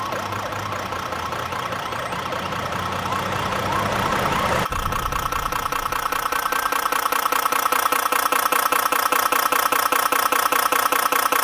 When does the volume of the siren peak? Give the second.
4 s.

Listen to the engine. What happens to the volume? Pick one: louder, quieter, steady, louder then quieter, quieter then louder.
louder.